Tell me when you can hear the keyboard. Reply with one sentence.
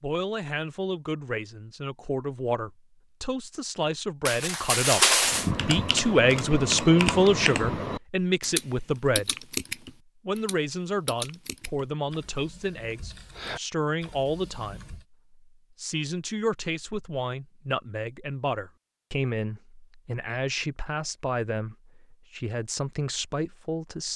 You can hear the keyboard from 5.2 to 15.1 s.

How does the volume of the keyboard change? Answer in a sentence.
The volume of the keyboard goes down.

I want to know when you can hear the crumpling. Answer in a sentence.
You can hear the crumpling from 4.2 to 5.5 s.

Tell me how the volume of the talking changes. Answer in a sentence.
The loudness of the talking goes up, then down.